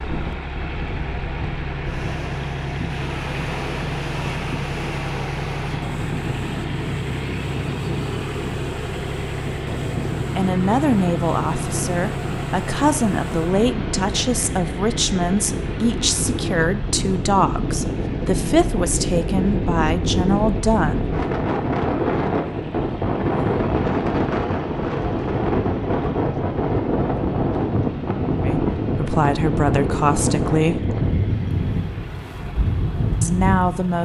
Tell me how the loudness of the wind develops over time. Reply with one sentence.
The loudness of the wind goes up.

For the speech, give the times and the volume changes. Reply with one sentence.
The speech can be heard from 10.3 to 21.1 s, at a steady volume; briefly from 28.4 to 30.9 s; and briefly from 33.2 to 34.0 s.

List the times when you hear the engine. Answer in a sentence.
You can hear the engine from 0.0 to 34.0 s.